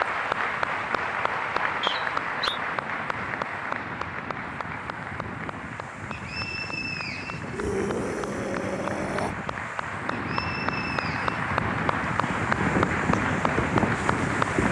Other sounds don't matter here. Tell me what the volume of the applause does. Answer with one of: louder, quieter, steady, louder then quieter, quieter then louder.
quieter then louder.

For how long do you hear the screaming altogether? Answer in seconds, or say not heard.
2 s.